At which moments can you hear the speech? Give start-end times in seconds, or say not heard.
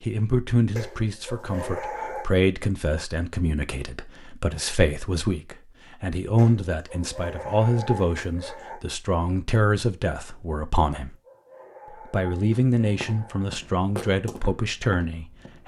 0.0-11.2, 12.1-15.6.